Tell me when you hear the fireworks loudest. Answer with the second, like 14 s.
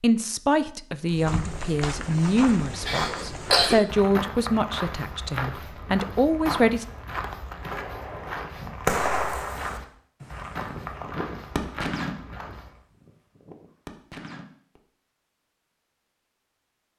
9 s.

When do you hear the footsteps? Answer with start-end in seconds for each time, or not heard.
1.1-12.8.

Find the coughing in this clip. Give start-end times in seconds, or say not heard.
2.9-3.8.